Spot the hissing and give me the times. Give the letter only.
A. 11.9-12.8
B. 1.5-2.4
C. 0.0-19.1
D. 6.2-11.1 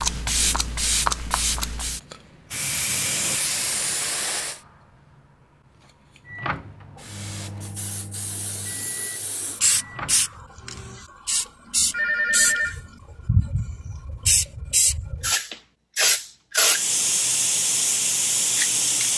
C.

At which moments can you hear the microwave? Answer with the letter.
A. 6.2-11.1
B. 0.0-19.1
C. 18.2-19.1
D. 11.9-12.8
A.